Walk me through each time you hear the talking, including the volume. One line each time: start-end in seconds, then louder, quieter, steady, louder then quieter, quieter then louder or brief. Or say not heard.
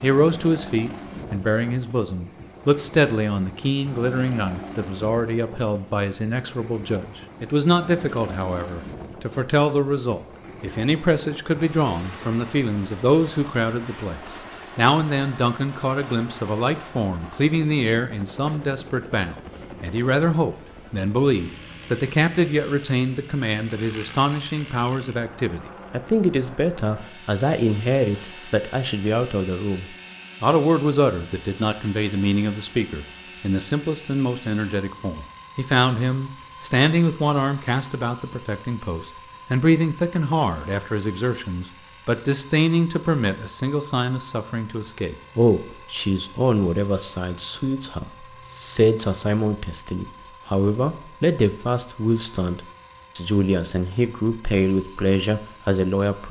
0.0-56.2 steady.